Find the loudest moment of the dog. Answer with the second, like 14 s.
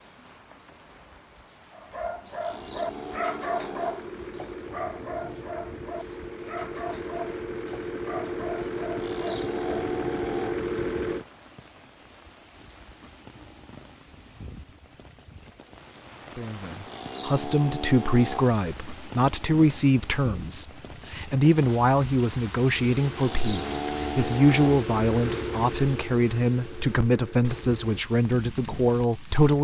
3 s.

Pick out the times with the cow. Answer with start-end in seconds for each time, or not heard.
2.4-4.1, 8.9-10.6, 16.9-18.6, 23.1-24.9.